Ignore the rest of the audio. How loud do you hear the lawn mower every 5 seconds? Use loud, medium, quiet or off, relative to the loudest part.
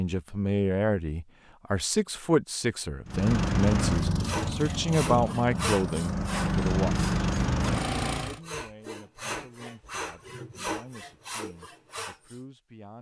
loud, loud, off.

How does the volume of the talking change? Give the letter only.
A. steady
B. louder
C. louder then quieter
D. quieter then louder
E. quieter
E.